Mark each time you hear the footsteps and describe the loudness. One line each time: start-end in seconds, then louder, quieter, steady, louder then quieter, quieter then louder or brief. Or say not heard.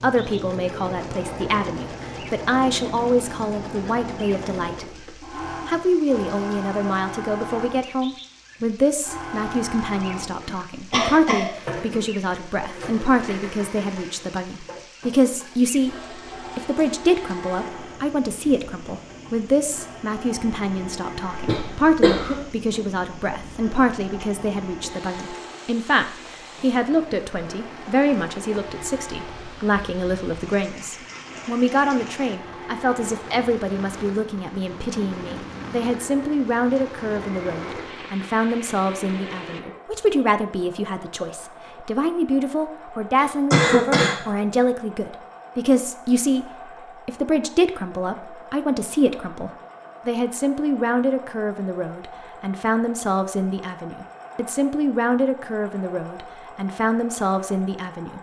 not heard.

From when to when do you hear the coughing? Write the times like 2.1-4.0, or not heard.
10.4-11.9, 21.3-22.4, 43.2-44.1.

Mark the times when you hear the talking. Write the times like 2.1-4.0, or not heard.
0.0-5.0, 5.7-15.9, 16.6-46.5, 47.0-58.1.